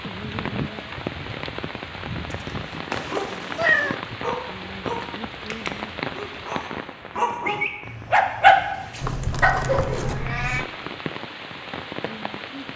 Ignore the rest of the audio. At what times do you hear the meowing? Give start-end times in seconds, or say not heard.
2.9-4.0, 9.0-10.7.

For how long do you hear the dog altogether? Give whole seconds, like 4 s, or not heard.
8 s.